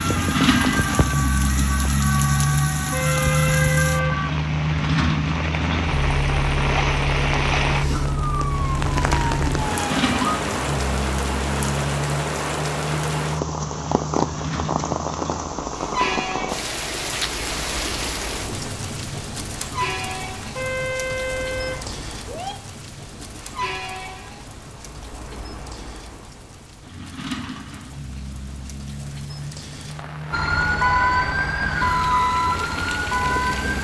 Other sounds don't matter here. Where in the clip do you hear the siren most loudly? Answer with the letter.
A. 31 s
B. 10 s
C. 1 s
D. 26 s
A.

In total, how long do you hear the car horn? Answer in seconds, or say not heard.
3 s.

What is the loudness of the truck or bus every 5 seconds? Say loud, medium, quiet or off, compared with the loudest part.
loud, loud, medium, medium, quiet, quiet, quiet.